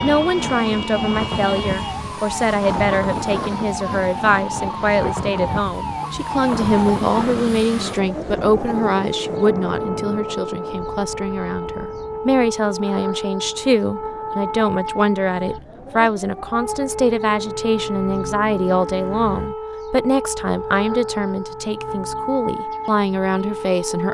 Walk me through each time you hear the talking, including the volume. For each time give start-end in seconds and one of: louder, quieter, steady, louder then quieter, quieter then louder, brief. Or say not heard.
0.0-24.0 steady.